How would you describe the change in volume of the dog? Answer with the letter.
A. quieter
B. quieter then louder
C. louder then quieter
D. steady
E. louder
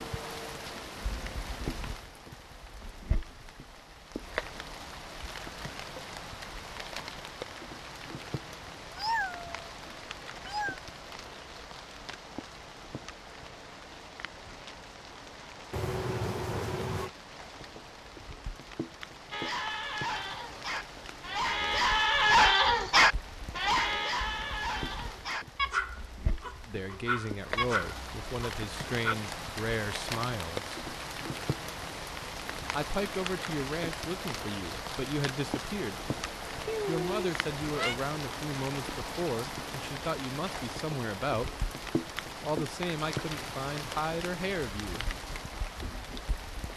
C.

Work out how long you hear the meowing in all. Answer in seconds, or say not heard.
4 s.